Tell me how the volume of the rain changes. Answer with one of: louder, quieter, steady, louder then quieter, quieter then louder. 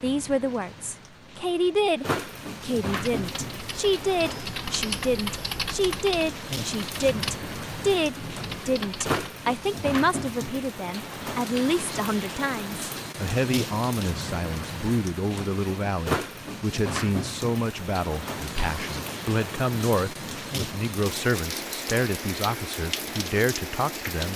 steady.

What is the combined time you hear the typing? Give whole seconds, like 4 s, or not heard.
6 s.